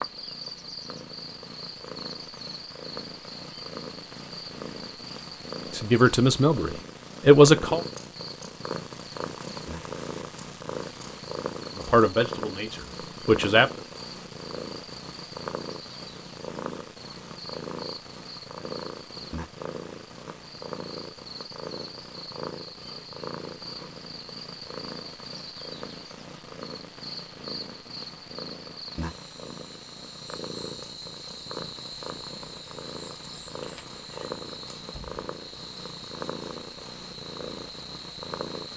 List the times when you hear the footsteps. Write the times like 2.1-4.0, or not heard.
not heard.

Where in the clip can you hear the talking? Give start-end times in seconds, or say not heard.
5.7-7.8, 11.8-13.8.